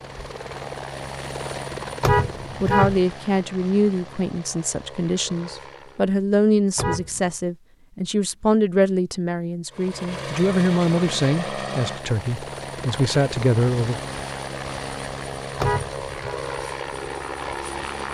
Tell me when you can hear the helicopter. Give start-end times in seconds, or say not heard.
0.0-6.2, 9.7-18.0.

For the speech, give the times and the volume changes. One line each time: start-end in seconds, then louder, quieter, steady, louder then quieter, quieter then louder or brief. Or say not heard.
2.6-14.0 steady.